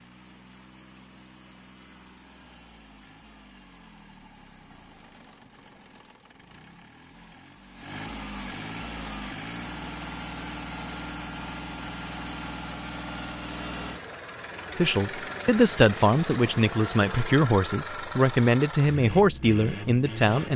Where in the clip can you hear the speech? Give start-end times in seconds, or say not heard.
14.8-20.5.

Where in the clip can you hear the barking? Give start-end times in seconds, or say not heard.
not heard.